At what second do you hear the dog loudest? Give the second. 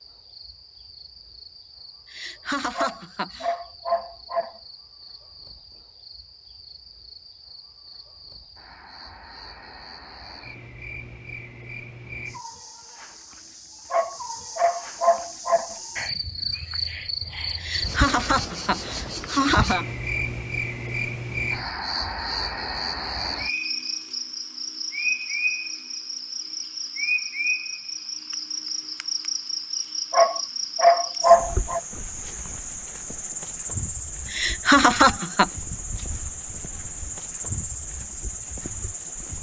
31 s.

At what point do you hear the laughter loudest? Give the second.
35 s.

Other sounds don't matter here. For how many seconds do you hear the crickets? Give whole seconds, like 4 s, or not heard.
39 s.